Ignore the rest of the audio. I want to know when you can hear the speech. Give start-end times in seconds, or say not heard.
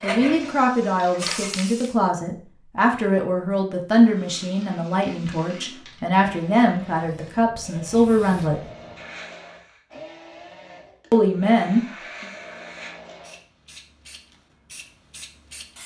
0.0-8.6, 11.1-12.3.